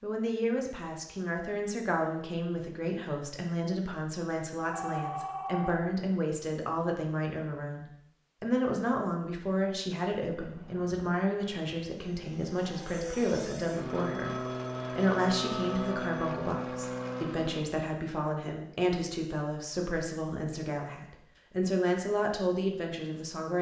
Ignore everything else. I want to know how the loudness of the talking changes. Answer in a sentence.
The volume of the talking stays about the same.